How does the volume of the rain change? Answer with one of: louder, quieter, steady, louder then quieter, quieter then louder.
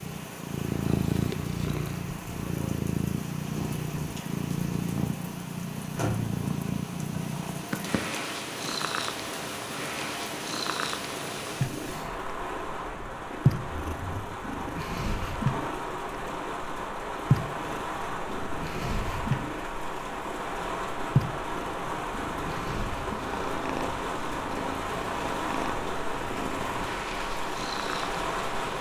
louder.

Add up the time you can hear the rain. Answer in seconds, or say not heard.
29 s.